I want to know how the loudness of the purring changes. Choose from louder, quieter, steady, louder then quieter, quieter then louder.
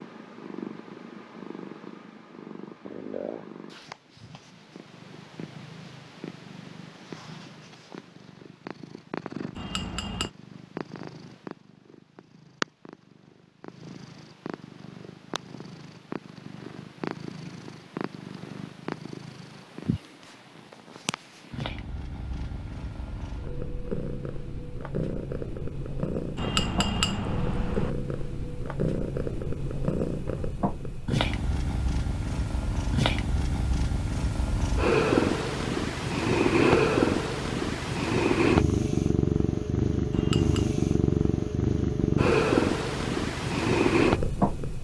louder.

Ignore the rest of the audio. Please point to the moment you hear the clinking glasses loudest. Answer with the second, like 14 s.
27 s.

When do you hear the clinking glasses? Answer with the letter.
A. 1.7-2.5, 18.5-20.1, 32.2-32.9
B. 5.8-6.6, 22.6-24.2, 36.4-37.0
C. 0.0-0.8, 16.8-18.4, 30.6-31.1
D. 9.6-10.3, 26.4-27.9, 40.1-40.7
D.